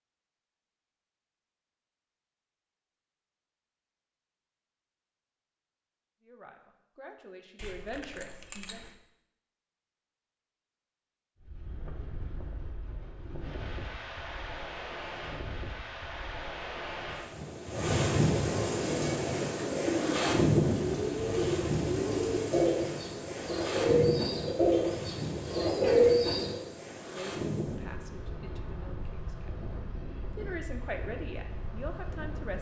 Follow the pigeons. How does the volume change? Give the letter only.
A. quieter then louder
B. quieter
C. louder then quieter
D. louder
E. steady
D.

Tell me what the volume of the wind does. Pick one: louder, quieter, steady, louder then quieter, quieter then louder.
louder then quieter.